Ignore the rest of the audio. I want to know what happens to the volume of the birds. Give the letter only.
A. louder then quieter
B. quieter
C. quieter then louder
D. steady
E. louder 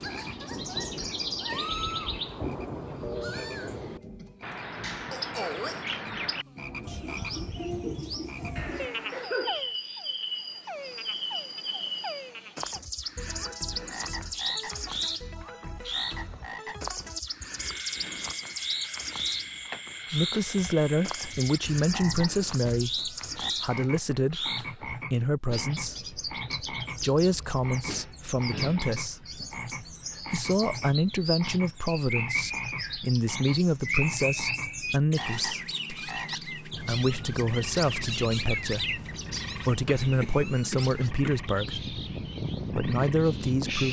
D.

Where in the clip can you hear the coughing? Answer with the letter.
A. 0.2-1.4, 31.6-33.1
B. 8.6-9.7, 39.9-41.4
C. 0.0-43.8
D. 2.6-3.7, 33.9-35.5
B.